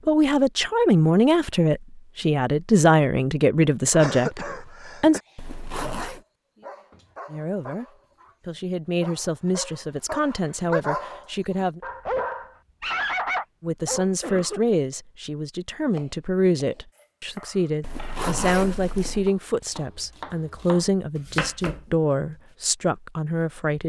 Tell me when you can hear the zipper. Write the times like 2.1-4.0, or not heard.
5.3-6.2, 17.8-19.3.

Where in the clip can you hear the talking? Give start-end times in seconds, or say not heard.
0.1-5.2, 7.2-7.8, 8.4-11.8, 13.6-23.8.